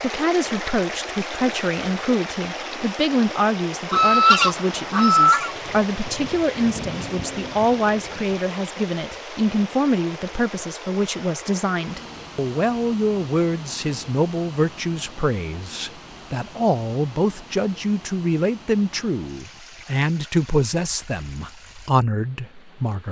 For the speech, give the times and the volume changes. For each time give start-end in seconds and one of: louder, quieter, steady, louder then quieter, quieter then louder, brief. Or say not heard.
0.0-23.0 steady.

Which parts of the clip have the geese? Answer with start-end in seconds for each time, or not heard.
3.9-5.5.